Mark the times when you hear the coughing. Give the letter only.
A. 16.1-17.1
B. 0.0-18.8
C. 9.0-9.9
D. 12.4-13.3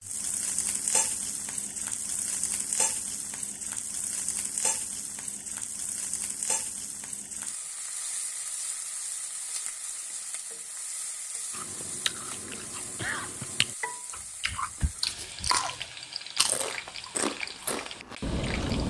D.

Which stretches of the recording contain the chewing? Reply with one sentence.
You can hear the chewing from 11.5 to 18.8 s.